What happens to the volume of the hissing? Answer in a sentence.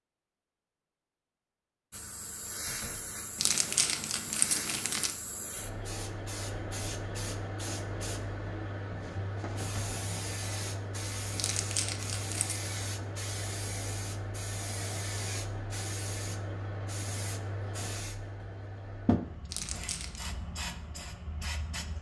The volume of the hissing stays about the same.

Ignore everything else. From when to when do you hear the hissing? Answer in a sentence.
The hissing can be heard from 1.9 to 21.9 s.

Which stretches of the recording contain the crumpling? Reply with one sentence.
You can hear the crumpling from 3.4 to 5.2 s, from 11.3 to 12.6 s and from 19.5 to 20.3 s.